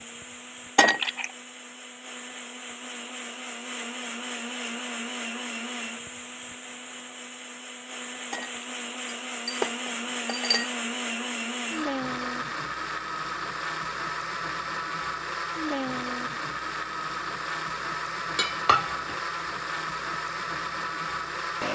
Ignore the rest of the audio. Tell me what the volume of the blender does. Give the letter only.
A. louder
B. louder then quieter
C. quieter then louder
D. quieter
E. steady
A.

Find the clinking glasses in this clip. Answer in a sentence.
The clinking glasses can be heard from 0.8 to 1.3 s, from 8.3 to 10.7 s and from 18.4 to 19.1 s.